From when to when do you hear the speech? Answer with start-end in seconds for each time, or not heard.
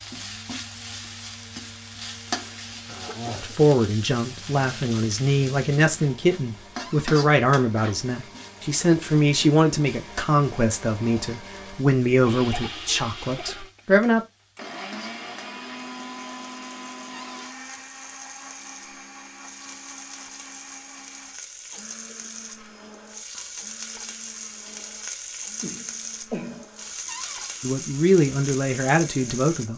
3.4-14.2, 27.6-29.7.